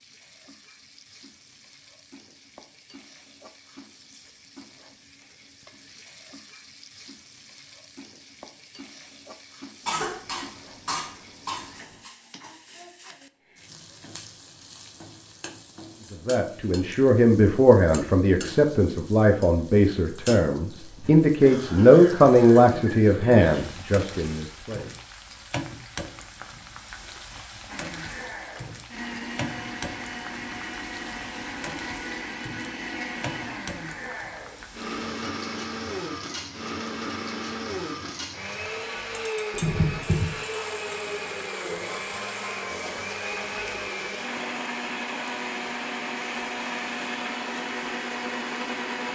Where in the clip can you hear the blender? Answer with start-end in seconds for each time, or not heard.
27.6-49.1.